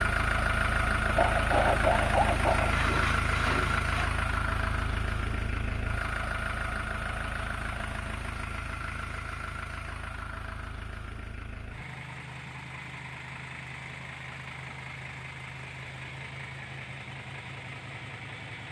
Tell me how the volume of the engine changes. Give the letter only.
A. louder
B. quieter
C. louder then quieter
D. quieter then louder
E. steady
B.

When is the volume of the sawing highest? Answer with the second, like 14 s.
2 s.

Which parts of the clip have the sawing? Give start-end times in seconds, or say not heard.
1.1-4.1.